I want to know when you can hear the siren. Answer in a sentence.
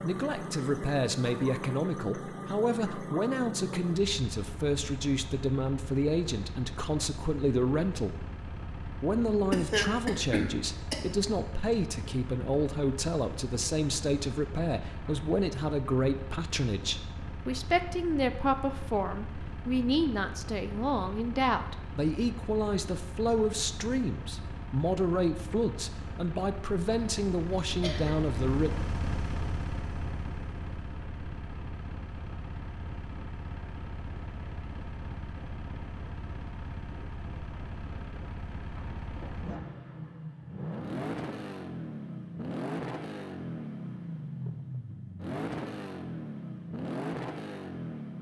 You can't hear the siren here.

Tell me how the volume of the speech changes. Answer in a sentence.
The loudness of the speech stays about the same.